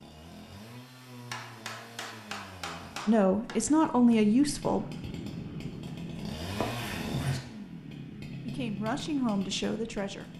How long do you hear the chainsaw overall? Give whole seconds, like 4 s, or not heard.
10 s.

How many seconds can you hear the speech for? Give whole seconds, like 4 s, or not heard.
4 s.